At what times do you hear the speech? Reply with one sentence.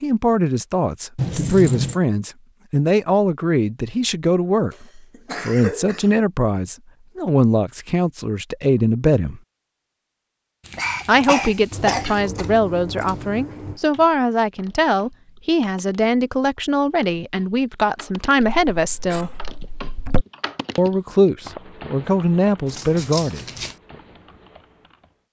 You can hear the speech from 0.0 to 9.4 s, from 11.1 to 19.3 s and from 20.8 to 23.4 s.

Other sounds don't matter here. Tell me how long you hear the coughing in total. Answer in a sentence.
The coughing can be heard for 5 seconds in total.